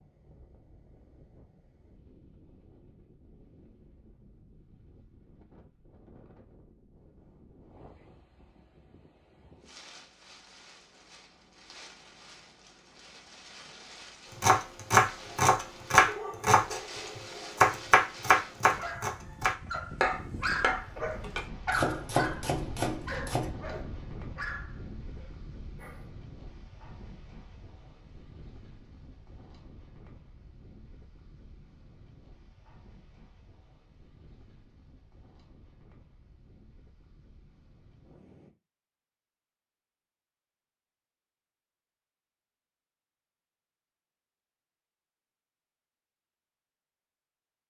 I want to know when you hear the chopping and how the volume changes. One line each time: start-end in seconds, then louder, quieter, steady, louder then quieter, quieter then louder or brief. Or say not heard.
14.4-23.8 quieter.